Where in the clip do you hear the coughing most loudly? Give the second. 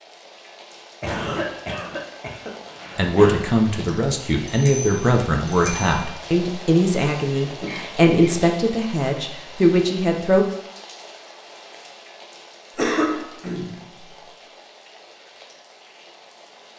13 s.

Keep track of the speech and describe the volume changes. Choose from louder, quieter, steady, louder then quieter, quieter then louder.
steady.